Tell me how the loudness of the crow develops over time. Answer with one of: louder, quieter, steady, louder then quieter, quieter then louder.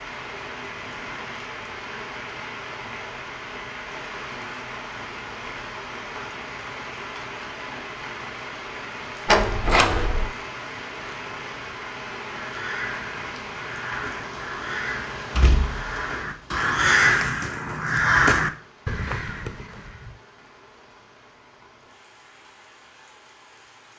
louder then quieter.